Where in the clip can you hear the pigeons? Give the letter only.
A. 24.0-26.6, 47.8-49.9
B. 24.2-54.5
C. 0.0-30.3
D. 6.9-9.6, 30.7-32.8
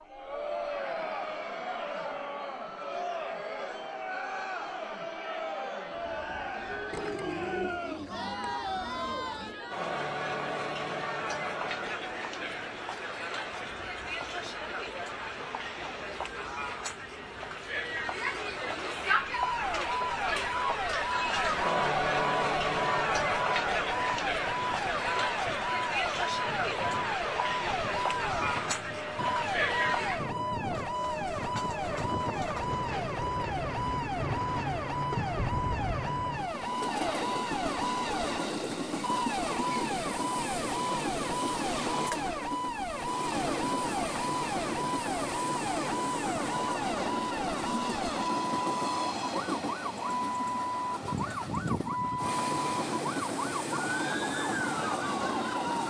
D.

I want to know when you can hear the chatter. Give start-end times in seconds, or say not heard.
0.0-30.3.